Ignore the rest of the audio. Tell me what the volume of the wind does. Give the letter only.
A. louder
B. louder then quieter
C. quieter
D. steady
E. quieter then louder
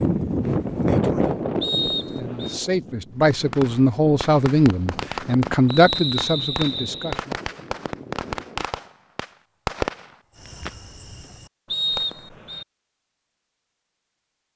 C.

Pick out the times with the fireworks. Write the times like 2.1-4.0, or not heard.
3.3-12.2.